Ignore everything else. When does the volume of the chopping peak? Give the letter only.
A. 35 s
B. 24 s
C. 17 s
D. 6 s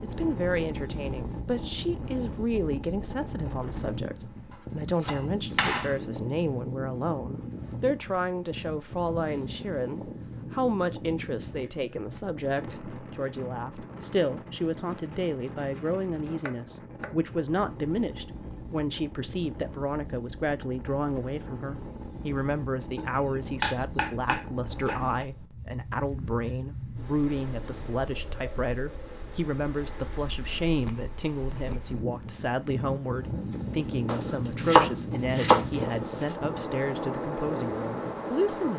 A.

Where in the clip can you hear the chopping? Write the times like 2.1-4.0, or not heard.
5.0-6.0, 16.4-17.3, 22.9-25.2, 34.0-36.4.